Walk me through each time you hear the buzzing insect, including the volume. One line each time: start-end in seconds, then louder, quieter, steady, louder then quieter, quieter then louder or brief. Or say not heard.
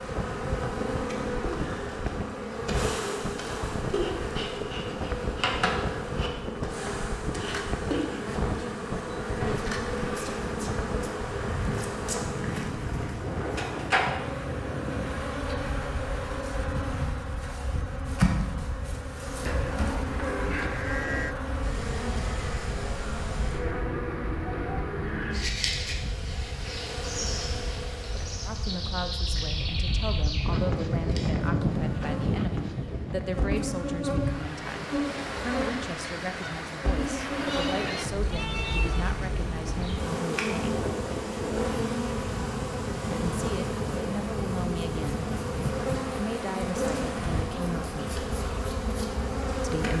0.0-49.9 steady.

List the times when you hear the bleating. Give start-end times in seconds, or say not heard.
19.4-21.4, 37.4-39.1.